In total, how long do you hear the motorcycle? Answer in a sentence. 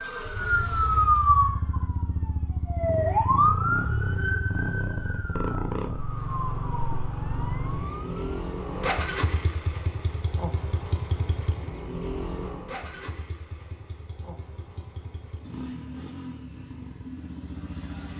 The motorcycle can be heard for 18 seconds in total.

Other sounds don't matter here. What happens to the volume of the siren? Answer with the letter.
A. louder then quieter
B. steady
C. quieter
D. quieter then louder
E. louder
C.